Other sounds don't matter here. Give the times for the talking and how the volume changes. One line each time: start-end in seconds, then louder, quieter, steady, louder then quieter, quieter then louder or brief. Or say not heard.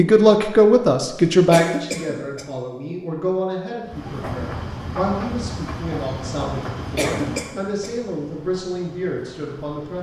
0.0-9.9 quieter.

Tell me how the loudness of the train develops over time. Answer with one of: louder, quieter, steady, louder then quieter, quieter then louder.
quieter.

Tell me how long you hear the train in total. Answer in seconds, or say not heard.
6 s.